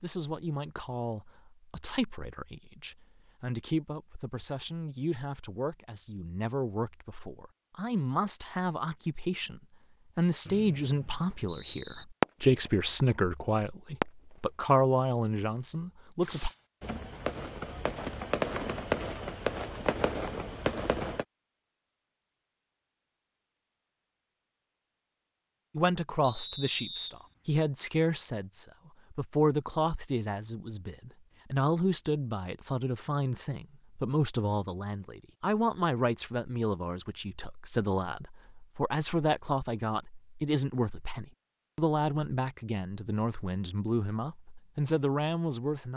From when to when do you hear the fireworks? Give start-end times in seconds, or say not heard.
12.2-12.7, 14.0-14.5, 16.2-21.2.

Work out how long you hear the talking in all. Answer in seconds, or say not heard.
37 s.